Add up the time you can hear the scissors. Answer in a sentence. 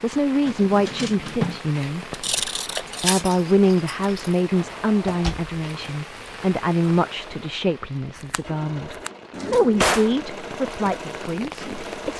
The scissors can be heard for 3 seconds in total.